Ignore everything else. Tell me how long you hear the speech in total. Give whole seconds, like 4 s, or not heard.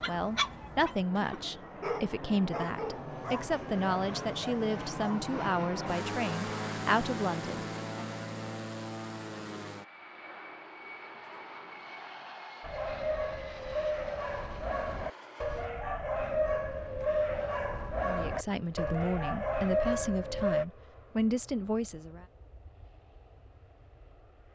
12 s.